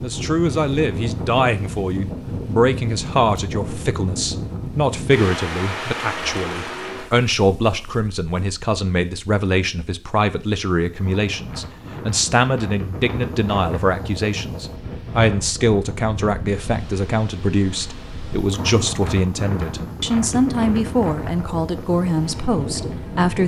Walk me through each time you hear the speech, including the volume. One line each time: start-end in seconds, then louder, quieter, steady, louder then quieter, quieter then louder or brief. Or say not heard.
0.0-23.4 steady.